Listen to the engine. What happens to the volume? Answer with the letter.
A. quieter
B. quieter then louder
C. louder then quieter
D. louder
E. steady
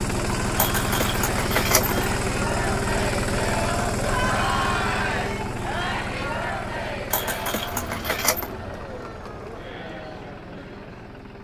A.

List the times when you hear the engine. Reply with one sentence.
You can hear the engine from 0.0 to 11.3 s.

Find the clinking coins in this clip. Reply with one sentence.
You can hear the clinking coins from 0.6 to 2.1 s and from 7.1 to 8.6 s.